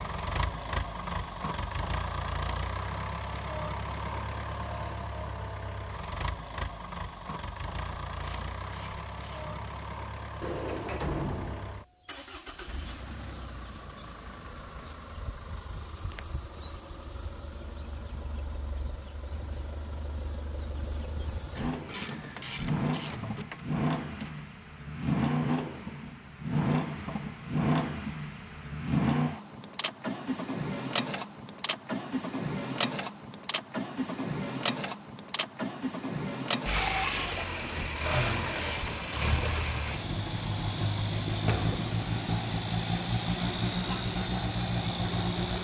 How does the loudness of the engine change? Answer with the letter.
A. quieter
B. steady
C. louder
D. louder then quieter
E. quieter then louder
E.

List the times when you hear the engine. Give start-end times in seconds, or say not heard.
0.0-45.6.